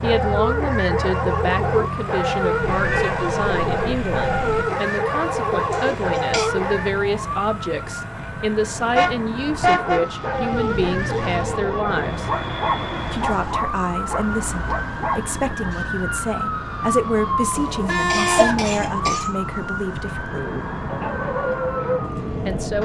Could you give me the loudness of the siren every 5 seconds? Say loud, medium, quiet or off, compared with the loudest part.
medium, medium, loud, loud, loud.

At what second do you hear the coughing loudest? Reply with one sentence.
The loudest moment of the coughing is at 18 seconds.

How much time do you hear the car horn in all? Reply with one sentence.
You can hear the car horn for 4 seconds altogether.